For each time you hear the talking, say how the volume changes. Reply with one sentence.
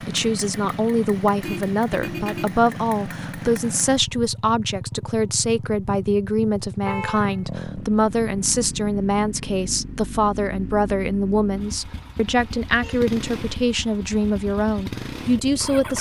You can hear the talking from 0.1 to 15.9 s, at a steady volume.